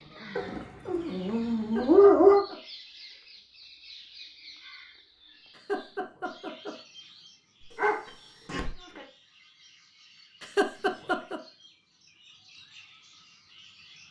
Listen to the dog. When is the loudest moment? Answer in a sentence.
The loudest moment of the dog is at 2 seconds.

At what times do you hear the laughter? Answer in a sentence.
The laughter can be heard from 1.6 to 2.5 s, from 5.5 to 6.8 s and from 10.4 to 11.4 s.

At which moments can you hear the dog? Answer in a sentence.
You can hear the dog from 0.3 to 2.5 s and from 7.6 to 9.1 s.